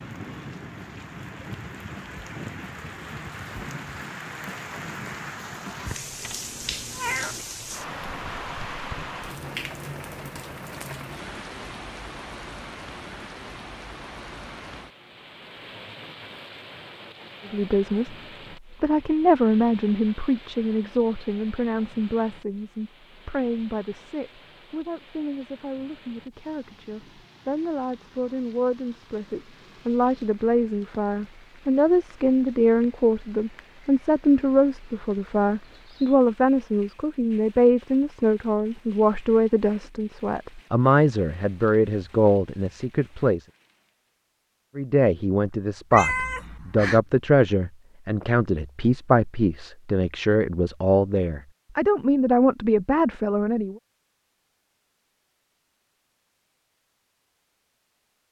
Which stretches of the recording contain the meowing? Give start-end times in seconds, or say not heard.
6.2-7.5, 45.9-47.0.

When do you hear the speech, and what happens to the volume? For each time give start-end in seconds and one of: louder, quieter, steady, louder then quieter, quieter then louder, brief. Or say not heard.
17.4-18.1 brief
18.8-43.5 quieter then louder
44.8-53.8 steady.